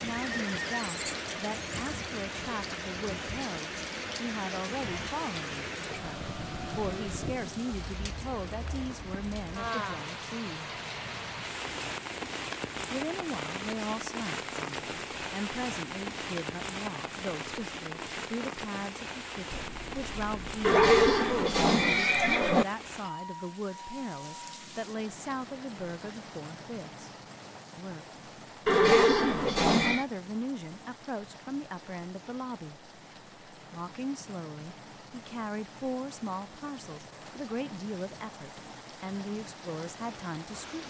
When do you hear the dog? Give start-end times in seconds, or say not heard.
19.5-21.0.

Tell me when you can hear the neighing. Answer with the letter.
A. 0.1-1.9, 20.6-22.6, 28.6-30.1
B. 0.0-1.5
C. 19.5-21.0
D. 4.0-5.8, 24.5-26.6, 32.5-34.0
A.